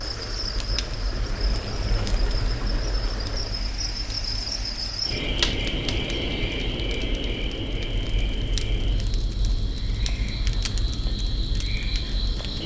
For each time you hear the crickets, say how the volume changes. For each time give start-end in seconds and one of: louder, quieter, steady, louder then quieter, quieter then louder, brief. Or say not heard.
0.0-12.6 louder then quieter.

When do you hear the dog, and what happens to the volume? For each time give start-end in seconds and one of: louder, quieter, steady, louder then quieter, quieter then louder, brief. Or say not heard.
not heard.